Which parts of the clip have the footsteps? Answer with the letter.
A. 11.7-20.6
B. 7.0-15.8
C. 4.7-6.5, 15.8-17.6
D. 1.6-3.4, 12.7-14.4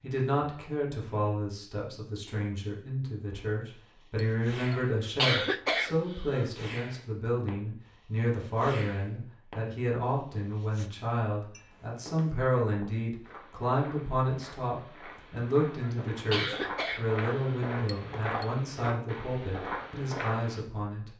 A.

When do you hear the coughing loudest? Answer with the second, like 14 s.
5 s.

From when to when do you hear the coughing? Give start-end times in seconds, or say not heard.
4.7-6.5, 15.8-17.6.